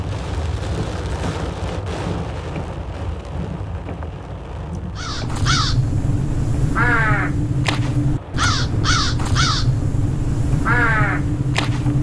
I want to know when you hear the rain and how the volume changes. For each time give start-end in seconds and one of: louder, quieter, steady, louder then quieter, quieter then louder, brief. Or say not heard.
0.0-11.9 quieter.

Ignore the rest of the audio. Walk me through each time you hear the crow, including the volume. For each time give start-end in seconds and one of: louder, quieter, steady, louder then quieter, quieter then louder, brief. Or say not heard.
4.9-11.9 steady.